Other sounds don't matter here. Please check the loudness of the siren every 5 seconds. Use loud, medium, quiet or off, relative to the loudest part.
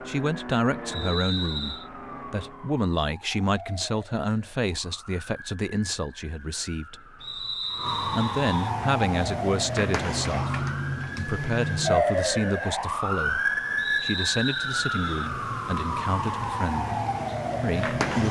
quiet, medium, loud, loud.